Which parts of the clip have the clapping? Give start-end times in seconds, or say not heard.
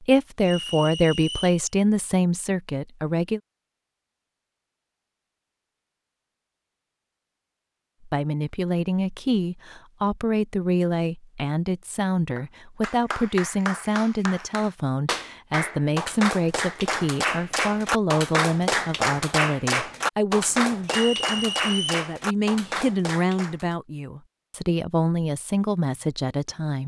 12.3-23.8.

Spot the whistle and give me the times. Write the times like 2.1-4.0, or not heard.
0.4-1.6, 20.9-22.1.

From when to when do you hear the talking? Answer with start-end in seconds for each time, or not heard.
0.1-3.4, 8.1-26.8.